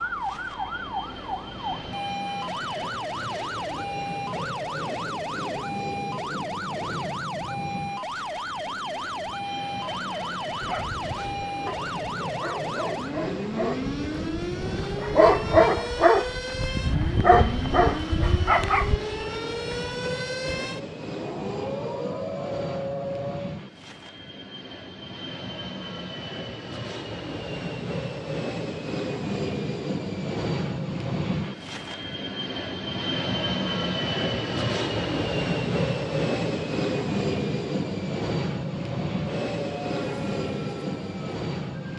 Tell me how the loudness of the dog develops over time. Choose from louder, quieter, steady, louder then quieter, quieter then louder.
louder.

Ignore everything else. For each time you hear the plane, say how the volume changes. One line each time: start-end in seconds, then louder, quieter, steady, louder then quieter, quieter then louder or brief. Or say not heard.
0.0-41.9 louder.